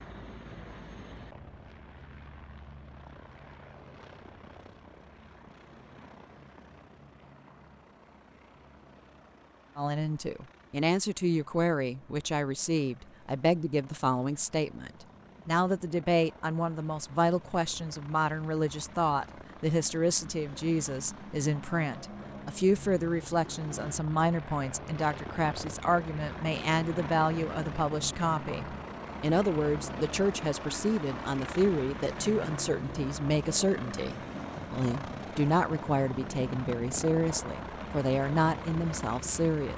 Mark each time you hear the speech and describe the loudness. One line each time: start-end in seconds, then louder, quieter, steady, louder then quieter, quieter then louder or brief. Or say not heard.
9.8-39.7 steady.